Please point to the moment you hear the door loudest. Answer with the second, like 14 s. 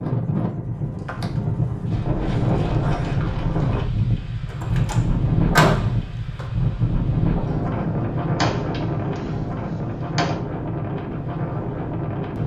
6 s.